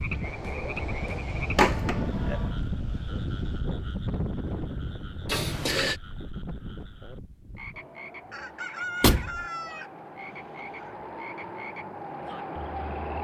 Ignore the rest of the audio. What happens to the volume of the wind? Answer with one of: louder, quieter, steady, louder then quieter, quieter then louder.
quieter then louder.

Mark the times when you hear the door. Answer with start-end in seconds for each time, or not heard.
1.6-2.5, 5.2-6.0, 9.0-9.4.